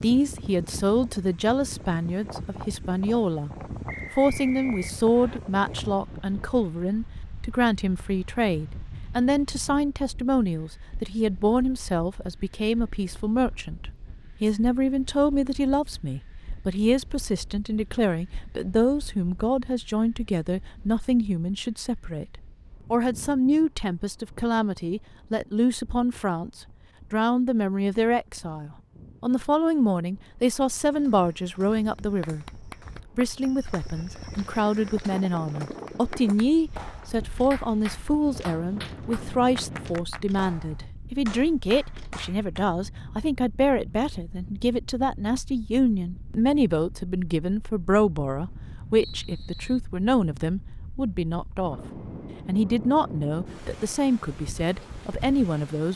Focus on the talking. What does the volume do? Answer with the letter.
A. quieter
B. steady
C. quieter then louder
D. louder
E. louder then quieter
B.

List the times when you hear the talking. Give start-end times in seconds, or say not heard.
0.0-3.5, 4.1-55.9.